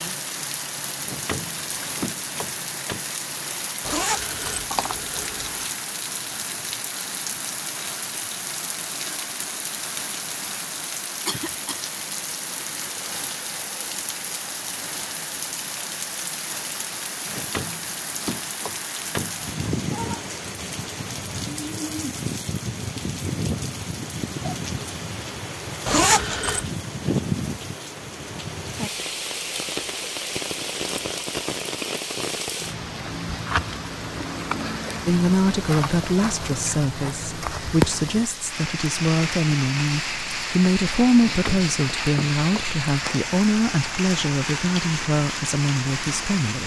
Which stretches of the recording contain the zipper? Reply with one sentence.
The zipper can be heard from 3.8 to 5.5 s and from 25.9 to 26.6 s.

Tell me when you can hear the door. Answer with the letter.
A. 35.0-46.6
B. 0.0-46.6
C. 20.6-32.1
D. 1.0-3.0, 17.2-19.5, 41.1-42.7
D.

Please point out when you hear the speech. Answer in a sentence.
You can hear the speech from 35.0 to 46.6 s.